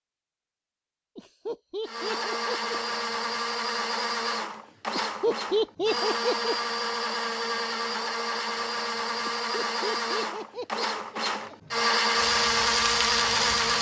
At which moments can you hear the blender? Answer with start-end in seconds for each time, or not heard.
1.9-13.7.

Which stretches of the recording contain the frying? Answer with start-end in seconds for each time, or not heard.
12.2-13.7.